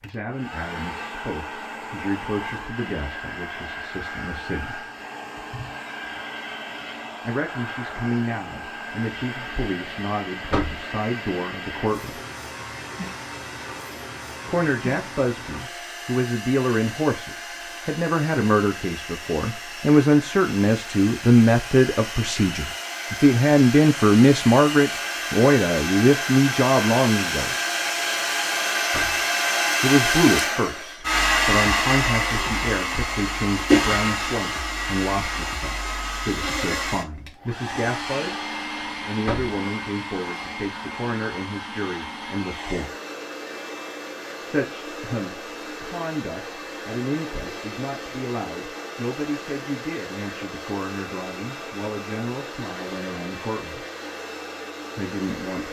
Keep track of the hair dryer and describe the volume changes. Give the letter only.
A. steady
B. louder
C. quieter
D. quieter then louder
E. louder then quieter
E.